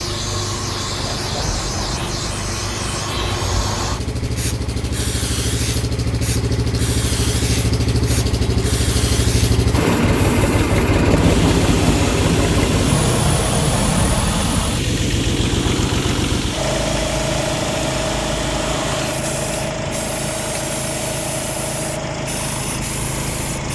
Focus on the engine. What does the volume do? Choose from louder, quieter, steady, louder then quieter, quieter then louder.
louder then quieter.